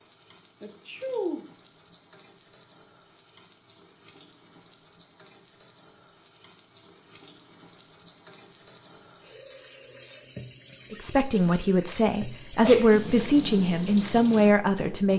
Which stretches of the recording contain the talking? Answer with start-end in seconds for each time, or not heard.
10.9-15.1.